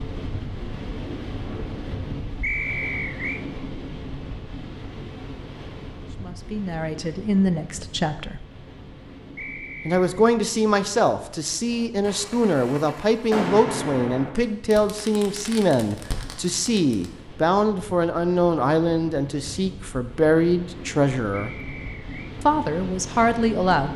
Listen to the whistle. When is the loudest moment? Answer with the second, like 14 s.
3 s.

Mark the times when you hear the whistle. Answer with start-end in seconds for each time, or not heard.
2.4-3.5, 9.3-10.1, 21.3-22.4.